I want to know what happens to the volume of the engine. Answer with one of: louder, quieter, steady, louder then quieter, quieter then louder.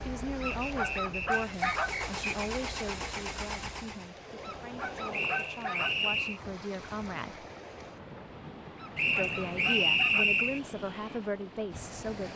louder.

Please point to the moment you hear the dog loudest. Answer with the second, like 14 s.
2 s.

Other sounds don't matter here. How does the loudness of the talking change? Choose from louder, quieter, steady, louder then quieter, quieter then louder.
quieter then louder.